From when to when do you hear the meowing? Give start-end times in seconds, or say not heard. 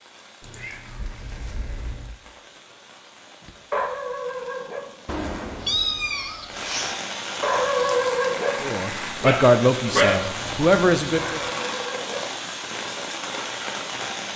0.4-2.1, 5.0-7.0, 10.3-11.6.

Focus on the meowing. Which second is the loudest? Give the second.
6 s.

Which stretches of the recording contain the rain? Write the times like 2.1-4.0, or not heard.
0.0-14.3.